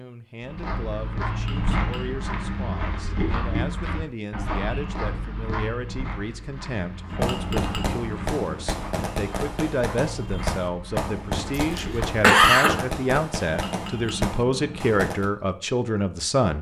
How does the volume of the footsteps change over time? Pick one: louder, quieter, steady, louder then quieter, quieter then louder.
quieter.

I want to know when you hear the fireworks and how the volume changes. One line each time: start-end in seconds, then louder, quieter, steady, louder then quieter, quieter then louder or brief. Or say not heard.
7.2-15.3 steady.